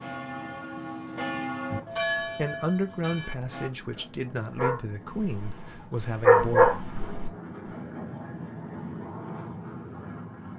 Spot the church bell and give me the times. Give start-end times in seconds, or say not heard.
0.0-3.7.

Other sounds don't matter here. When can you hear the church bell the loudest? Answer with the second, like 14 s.
2 s.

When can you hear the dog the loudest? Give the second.
6 s.